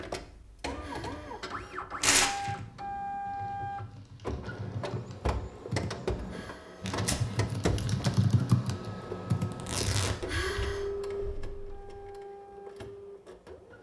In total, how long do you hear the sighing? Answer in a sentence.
The sighing can be heard for 2 seconds in total.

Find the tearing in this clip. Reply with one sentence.
You can hear the tearing from 2.0 to 2.5 s, from 6.8 to 7.2 s and from 9.5 to 10.2 s.